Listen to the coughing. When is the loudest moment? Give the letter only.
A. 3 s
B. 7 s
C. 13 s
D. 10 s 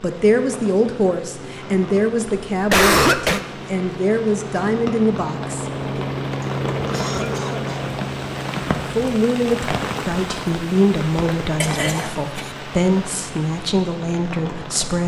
A.